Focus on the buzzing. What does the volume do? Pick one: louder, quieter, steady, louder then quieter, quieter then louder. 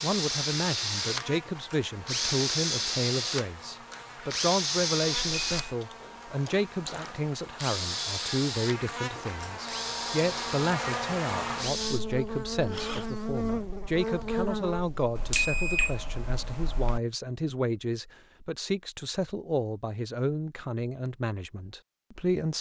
louder.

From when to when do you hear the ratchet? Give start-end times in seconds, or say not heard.
not heard.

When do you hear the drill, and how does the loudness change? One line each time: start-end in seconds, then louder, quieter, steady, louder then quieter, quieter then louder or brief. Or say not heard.
0.0-13.2 quieter.